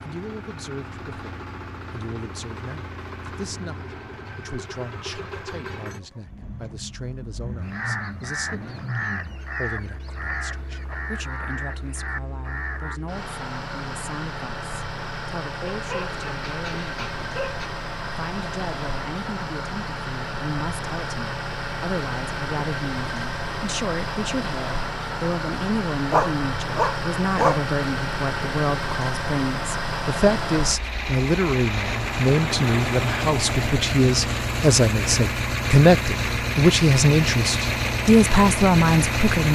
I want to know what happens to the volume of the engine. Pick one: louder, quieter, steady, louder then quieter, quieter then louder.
louder.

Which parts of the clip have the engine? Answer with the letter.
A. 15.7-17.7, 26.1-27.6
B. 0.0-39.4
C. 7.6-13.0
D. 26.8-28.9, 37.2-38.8
B.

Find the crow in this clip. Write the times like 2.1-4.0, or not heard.
7.6-13.0.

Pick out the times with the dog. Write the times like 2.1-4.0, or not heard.
15.7-17.7, 26.1-27.6.